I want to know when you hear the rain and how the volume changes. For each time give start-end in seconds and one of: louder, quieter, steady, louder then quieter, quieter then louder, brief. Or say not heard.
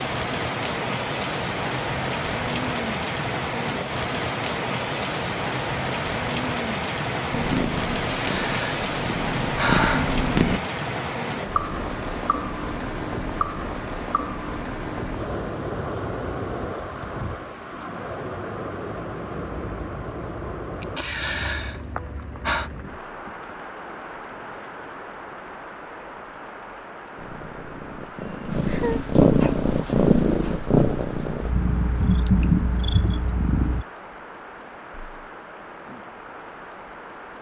0.0-37.3 quieter.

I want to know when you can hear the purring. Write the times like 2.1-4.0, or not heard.
7.3-10.6, 27.1-33.9.